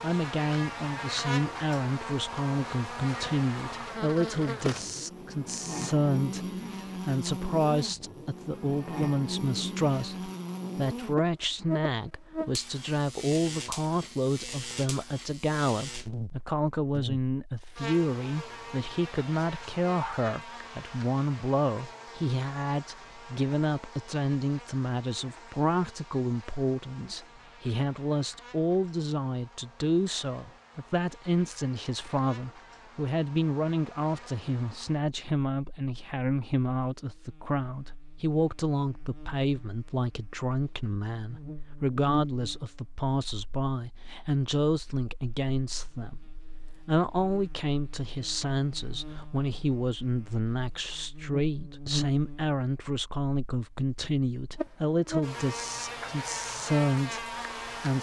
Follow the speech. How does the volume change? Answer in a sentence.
The loudness of the speech stays about the same.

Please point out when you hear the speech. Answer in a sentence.
The speech can be heard from 0.0 to 46.2 s and from 46.9 to 57.9 s.